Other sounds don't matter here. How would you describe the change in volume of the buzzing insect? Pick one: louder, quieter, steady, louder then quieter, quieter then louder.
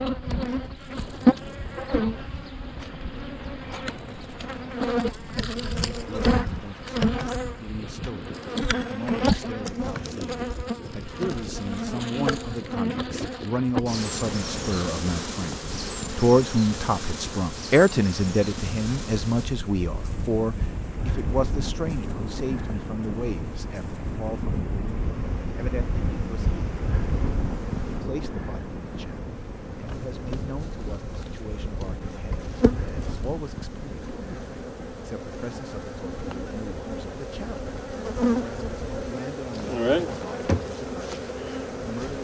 quieter then louder.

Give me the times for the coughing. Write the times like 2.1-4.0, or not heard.
not heard.